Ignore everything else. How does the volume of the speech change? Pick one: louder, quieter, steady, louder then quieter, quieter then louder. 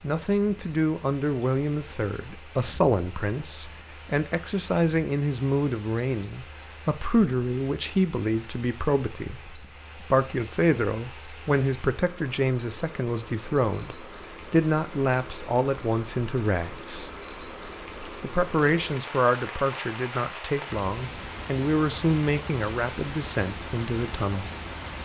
steady.